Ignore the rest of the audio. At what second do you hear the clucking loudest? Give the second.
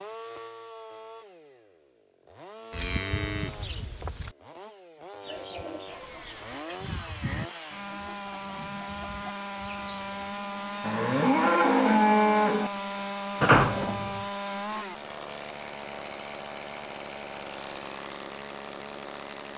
7 s.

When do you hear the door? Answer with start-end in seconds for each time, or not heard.
13.4-14.2.